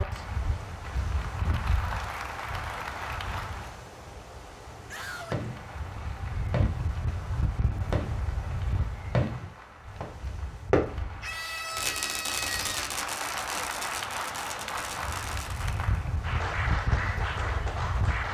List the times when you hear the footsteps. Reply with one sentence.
The footsteps can't be heard in this clip.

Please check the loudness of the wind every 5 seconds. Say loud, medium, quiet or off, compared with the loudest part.
medium, loud, quiet, loud.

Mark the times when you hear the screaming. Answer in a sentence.
You can hear the screaming from 4.9 to 5.4 s and from 11.2 to 13.0 s.